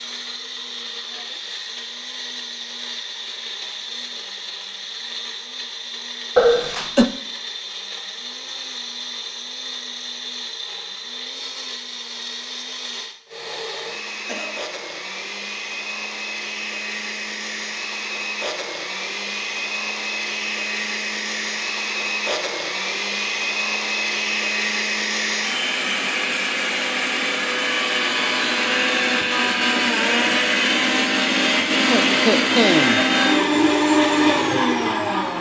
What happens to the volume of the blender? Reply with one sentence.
The volume of the blender goes up.